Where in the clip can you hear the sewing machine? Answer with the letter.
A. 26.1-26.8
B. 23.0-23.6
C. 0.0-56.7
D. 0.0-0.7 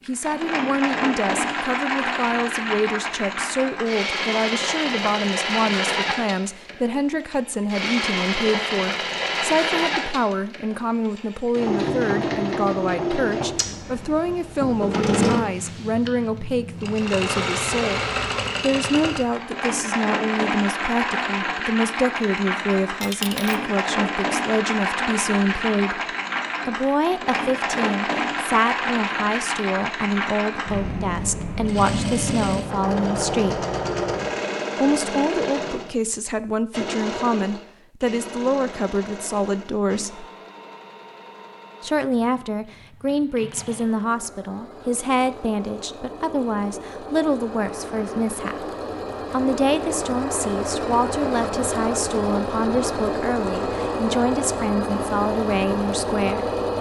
C.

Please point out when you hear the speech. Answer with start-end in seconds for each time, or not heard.
0.1-18.0, 18.6-26.0, 26.6-33.6, 34.8-40.2, 41.8-48.7, 49.3-56.5.